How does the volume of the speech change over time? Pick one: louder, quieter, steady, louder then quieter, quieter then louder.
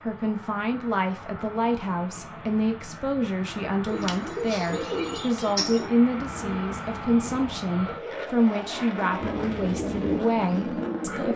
steady.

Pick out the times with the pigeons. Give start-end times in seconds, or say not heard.
3.9-7.5, 9.2-11.3.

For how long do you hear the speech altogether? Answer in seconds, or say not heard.
11 s.